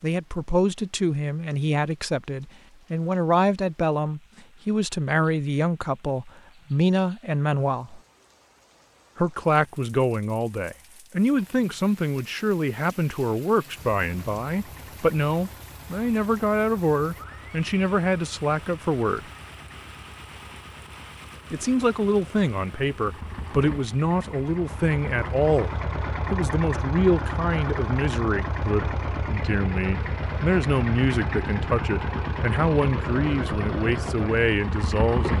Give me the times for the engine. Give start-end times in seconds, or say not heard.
13.7-35.3.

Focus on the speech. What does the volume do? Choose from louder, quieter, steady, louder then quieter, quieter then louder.
steady.